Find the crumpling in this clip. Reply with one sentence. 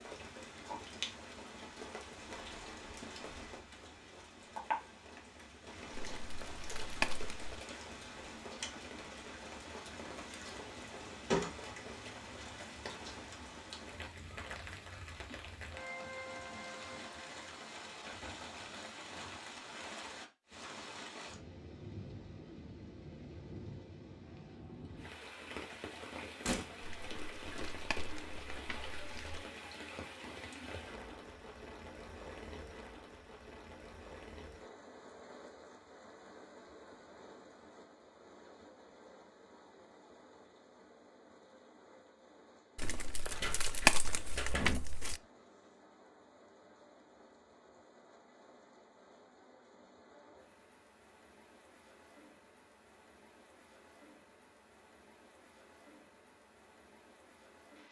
The crumpling can be heard from 5.9 to 7.6 s, from 26.8 to 29.4 s and from 42.8 to 45.2 s.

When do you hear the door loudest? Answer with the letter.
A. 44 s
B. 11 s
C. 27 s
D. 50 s
B.